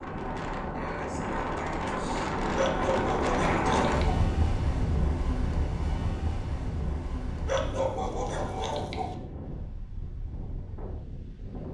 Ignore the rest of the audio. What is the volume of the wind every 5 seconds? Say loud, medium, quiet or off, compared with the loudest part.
loud, medium, quiet.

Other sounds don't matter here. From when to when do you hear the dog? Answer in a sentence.
You can hear the dog from 2.5 to 4.2 s and from 7.5 to 9.2 s.